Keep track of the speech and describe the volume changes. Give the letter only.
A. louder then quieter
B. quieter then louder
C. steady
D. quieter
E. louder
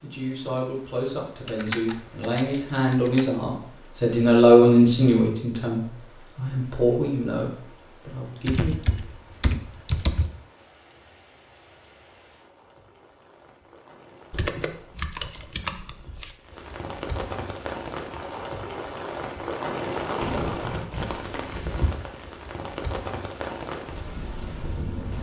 A.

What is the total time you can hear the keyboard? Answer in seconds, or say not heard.
7 s.